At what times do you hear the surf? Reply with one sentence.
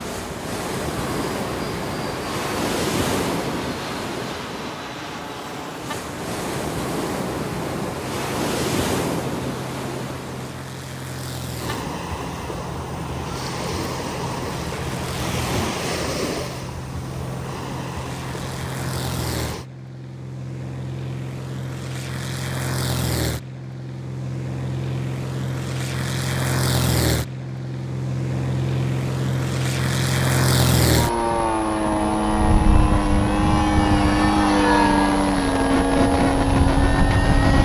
You can hear the surf from 0.0 to 19.6 s.